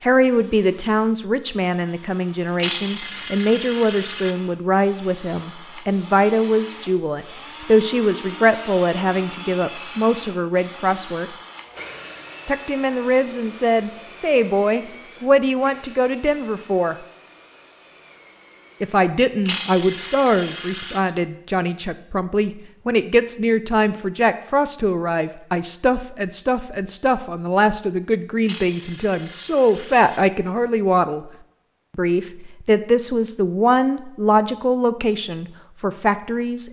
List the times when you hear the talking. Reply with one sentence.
You can hear the talking from 0.0 to 11.3 s, from 12.4 to 16.9 s, from 18.8 to 31.2 s and from 31.9 to 36.6 s.